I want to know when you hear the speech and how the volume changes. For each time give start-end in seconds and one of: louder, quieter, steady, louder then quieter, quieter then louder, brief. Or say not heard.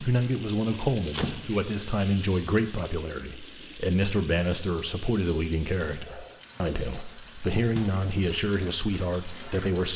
0.0-9.9 steady.